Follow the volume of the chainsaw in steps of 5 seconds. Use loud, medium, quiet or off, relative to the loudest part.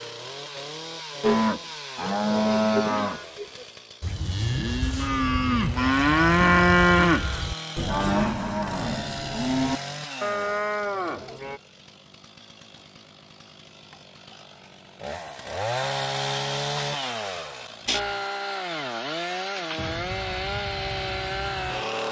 medium, medium, quiet, loud, loud.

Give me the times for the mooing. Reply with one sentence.
The mooing can be heard from 1.2 to 11.6 s.